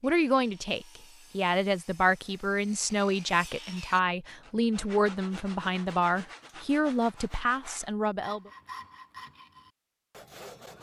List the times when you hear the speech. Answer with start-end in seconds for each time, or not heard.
0.0-8.5.